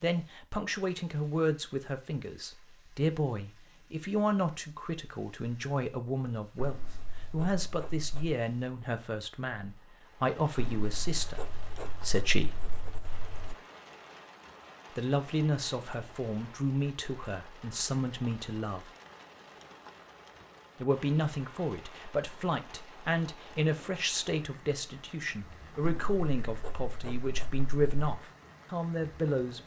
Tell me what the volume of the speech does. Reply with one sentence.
The loudness of the speech stays about the same.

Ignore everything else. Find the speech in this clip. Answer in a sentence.
The speech can be heard from 0.0 to 12.7 s, from 14.9 to 18.9 s and from 20.8 to 29.6 s.